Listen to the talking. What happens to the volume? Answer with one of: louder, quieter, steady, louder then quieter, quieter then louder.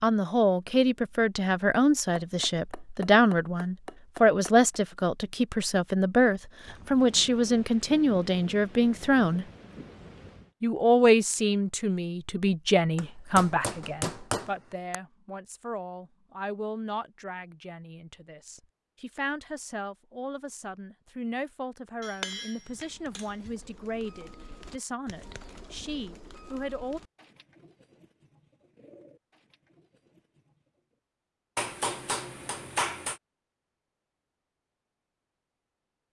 quieter.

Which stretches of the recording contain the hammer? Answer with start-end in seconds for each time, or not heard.
2.1-4.8, 12.9-14.9, 22.0-23.5, 31.6-33.2.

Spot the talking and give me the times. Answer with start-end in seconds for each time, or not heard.
0.0-9.4, 10.6-27.0.